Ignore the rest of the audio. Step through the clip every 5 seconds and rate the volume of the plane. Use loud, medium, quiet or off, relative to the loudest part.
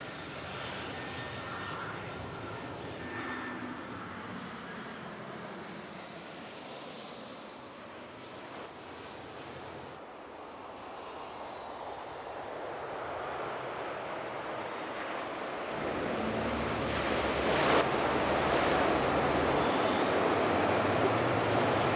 loud, medium, loud, loud, loud.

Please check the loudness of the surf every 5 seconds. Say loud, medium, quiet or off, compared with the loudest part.
quiet, quiet, quiet, loud, loud.